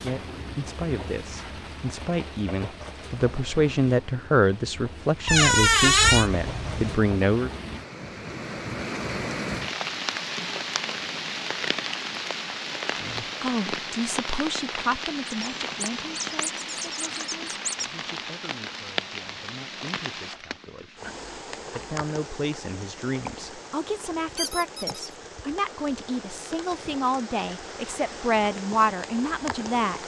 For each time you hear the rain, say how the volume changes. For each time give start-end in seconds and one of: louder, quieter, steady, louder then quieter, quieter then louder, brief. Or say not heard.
0.0-30.0 louder then quieter.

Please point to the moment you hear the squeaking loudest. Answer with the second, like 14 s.
6 s.